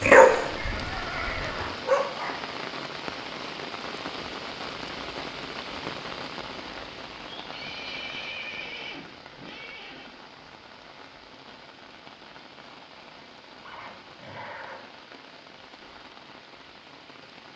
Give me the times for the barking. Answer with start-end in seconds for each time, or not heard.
0.0-2.4.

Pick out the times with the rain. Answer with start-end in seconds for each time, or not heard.
0.0-17.5.